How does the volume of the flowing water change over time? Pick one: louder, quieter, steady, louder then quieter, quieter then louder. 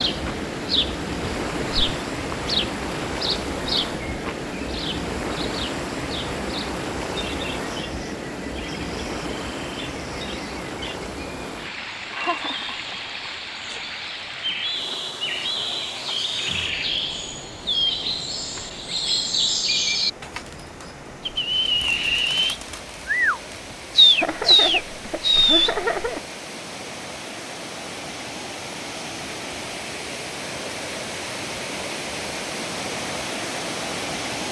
quieter then louder.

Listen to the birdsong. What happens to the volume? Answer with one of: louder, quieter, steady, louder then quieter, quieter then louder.
quieter then louder.